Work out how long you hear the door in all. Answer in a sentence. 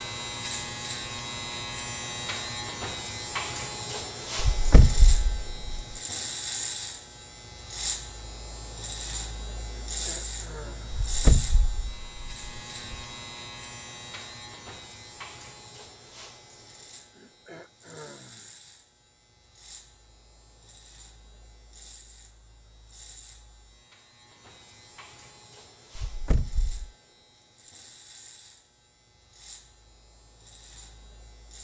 You can hear the door for 4 seconds altogether.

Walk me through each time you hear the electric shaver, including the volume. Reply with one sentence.
You can hear the electric shaver from 0.0 to 31.5 s, getting quieter.